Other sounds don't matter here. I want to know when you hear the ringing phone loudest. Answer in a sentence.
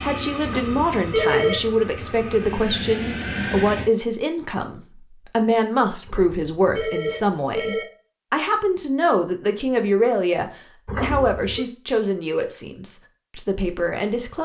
The loudest moment of the ringing phone is at 1 second.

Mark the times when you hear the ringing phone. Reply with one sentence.
You can hear the ringing phone from 0.5 to 1.8 s, from 6.0 to 7.8 s and from 10.8 to 11.7 s.